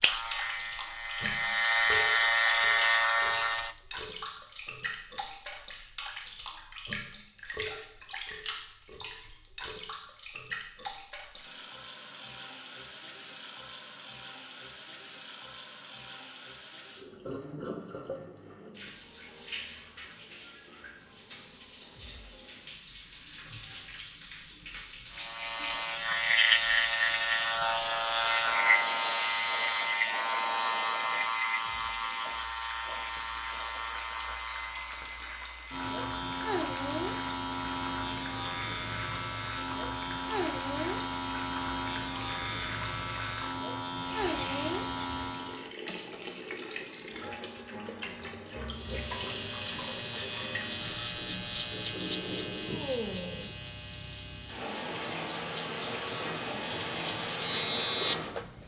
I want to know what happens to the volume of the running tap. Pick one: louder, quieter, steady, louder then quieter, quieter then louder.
quieter then louder.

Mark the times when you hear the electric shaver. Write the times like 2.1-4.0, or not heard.
0.0-3.8, 25.1-45.8, 48.7-58.6.